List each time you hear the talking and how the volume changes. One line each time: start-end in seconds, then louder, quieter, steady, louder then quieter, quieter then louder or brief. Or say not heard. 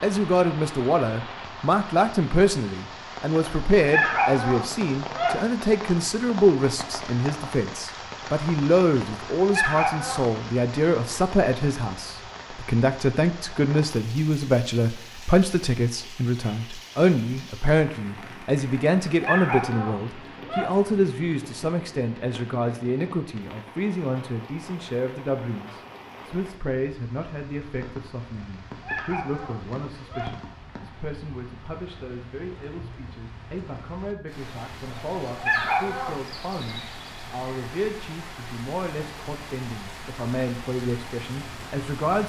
0.0-42.2 quieter.